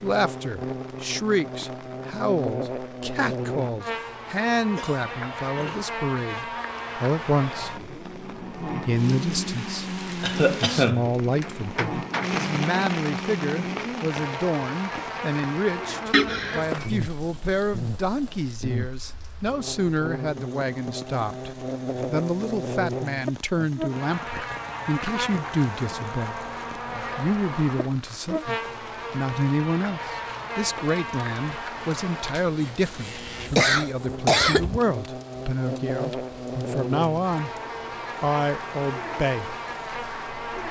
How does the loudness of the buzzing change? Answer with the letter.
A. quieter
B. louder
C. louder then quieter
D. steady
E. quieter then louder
D.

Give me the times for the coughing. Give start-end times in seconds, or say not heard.
10.2-11.1, 16.1-16.6, 32.6-34.8.